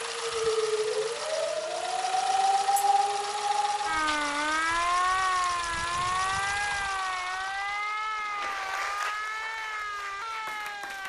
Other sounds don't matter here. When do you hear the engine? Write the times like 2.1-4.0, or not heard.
0.0-11.0.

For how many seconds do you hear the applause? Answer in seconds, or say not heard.
3 s.